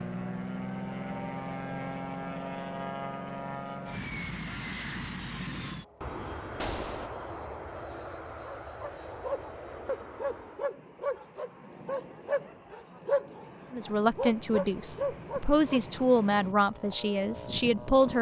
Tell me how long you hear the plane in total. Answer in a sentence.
You can hear the plane for 18 seconds altogether.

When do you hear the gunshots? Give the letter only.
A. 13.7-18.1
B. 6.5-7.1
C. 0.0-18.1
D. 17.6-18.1
B.